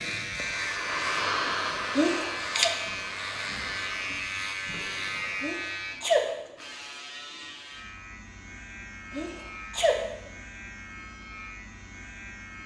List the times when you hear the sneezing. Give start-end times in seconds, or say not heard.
1.9-2.7, 5.4-6.2, 9.1-10.0.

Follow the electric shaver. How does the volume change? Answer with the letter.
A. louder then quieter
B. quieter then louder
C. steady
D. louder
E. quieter
E.